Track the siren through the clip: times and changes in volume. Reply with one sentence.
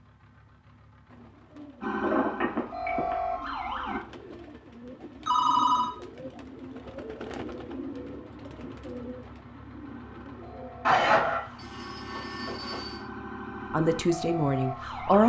You can hear the siren briefly from 1.8 to 4.0 s; and from 9.8 to 15.2 s, getting louder.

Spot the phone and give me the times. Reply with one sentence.
You can hear the phone from 2.0 to 3.1 s, from 5.2 to 6.0 s and from 10.8 to 12.9 s.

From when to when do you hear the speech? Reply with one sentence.
You can hear the speech from 13.7 to 15.2 s.